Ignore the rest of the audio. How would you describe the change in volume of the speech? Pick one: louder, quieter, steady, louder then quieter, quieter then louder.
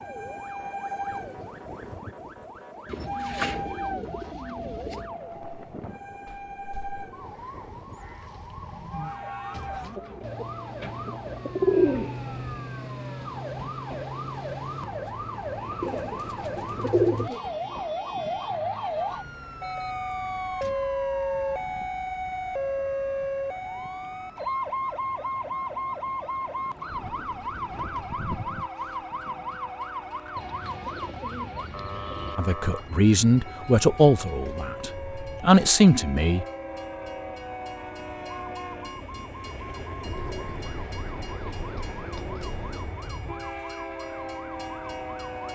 quieter then louder.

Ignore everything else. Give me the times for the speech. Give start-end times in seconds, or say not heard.
32.4-36.5.